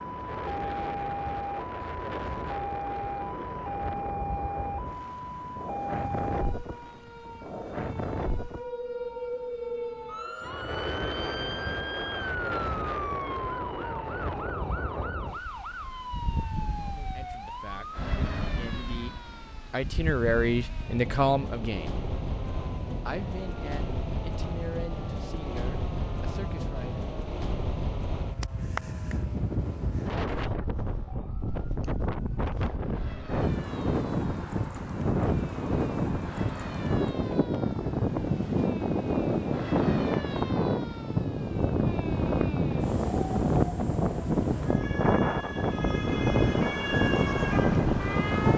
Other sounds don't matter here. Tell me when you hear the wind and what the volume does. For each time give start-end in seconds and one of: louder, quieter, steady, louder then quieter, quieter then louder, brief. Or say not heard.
0.0-48.5 louder.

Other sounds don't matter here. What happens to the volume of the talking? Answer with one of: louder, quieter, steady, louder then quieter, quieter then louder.
louder then quieter.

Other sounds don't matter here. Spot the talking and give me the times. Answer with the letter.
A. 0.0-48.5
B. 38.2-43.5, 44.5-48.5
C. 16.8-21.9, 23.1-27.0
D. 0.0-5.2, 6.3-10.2
C.